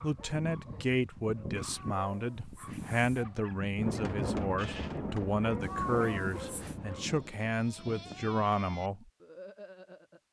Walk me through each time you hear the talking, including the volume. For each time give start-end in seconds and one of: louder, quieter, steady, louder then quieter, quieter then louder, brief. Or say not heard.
0.0-9.1 steady.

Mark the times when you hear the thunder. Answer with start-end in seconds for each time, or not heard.
3.8-7.3.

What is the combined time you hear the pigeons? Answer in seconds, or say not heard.
not heard.